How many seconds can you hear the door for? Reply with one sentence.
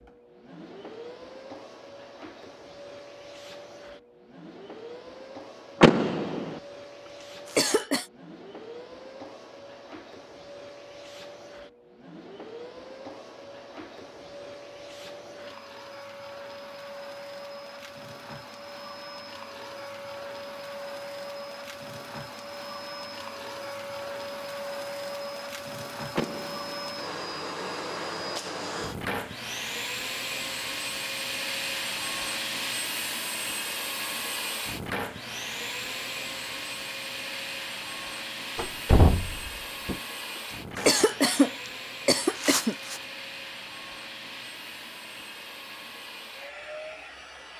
You can hear the door for 3 seconds altogether.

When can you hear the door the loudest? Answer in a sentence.
The volume of the door peaks at 6 seconds.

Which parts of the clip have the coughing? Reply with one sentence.
The coughing can be heard from 7.5 to 8.1 s and from 40.8 to 43.0 s.